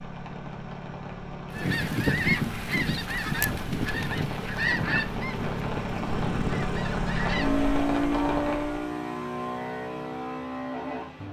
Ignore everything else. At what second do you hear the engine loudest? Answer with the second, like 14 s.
8 s.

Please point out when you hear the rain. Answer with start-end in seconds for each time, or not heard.
0.0-8.8.